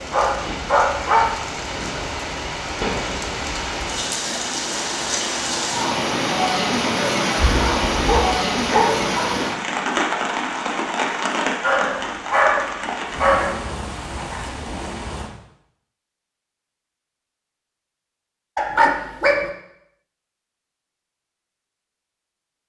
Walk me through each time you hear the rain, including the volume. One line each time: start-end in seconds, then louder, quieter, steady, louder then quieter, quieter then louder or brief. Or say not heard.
0.0-15.3 louder then quieter.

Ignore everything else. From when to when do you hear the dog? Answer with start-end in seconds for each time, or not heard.
0.1-1.4, 7.5-9.4, 11.6-13.6, 18.6-19.5.